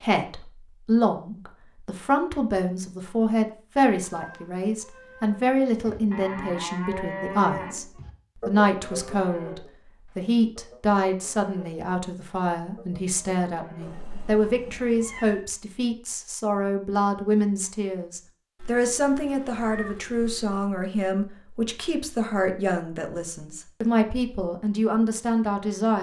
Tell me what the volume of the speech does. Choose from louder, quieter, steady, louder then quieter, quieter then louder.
steady.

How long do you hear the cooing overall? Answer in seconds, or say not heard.
not heard.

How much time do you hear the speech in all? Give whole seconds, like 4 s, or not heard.
26 s.